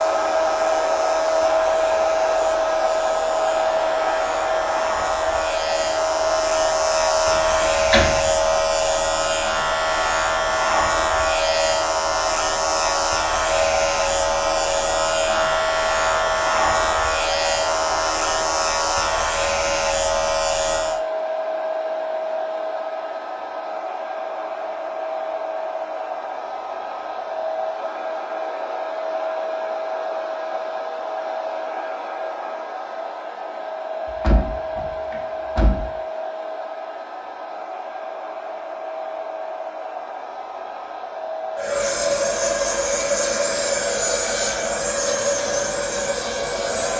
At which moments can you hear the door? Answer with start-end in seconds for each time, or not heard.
7.6-8.2, 34.0-35.9.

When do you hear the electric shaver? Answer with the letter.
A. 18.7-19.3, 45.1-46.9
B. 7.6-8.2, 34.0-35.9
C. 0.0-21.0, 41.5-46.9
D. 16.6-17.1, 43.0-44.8
C.